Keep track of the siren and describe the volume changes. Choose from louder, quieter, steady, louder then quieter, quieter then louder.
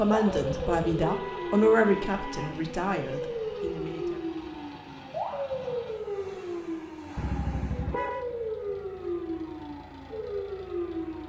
steady.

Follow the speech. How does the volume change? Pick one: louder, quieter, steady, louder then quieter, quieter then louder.
louder then quieter.